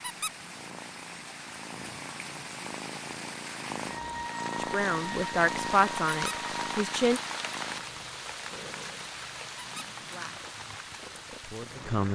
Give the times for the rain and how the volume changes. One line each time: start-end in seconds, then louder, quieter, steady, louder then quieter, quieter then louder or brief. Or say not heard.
0.0-12.1 louder then quieter.